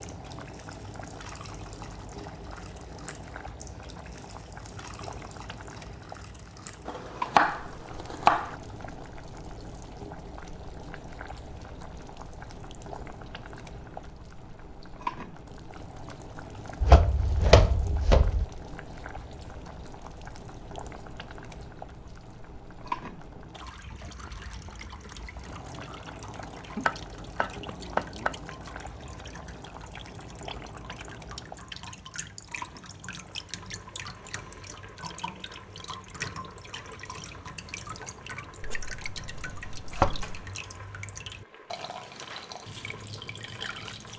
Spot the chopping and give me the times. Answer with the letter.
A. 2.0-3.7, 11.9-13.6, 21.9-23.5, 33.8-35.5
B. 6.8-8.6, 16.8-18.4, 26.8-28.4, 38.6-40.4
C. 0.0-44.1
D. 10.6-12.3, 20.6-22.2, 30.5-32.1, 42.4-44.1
B.